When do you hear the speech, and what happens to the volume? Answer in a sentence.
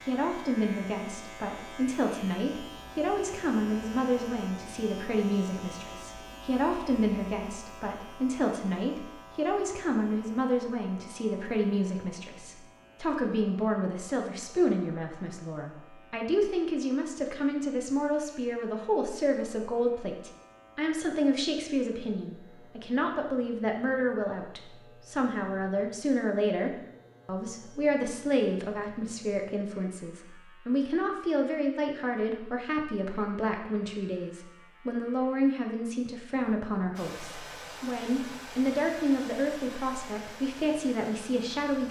The speech can be heard from 0.1 to 41.8 s, at a steady volume.